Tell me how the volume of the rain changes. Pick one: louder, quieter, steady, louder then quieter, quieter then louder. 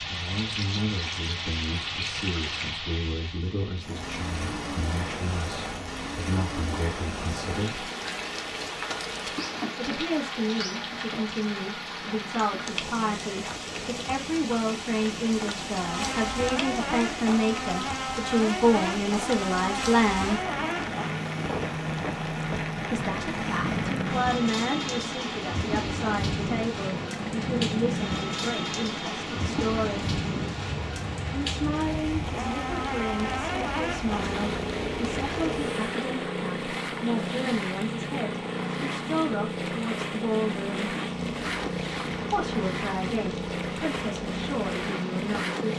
quieter.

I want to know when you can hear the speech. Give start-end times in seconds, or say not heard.
0.1-7.9, 9.8-20.4, 22.9-30.1, 31.4-40.9, 42.3-45.7.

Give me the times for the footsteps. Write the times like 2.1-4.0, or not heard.
not heard.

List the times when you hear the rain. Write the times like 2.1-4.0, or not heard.
0.0-45.5.